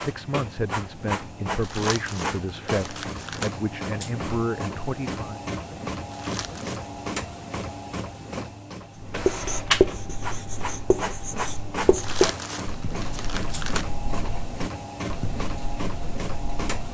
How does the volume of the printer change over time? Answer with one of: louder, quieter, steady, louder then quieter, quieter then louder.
steady.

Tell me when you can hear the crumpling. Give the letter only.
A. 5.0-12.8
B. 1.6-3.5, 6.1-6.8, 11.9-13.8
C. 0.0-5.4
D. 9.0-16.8
B.